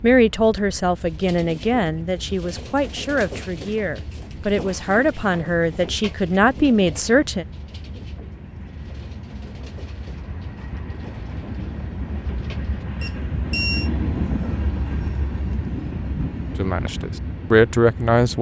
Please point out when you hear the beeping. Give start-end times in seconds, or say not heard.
12.9-13.9.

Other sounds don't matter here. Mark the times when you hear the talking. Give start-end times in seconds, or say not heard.
0.0-7.5, 16.6-18.3.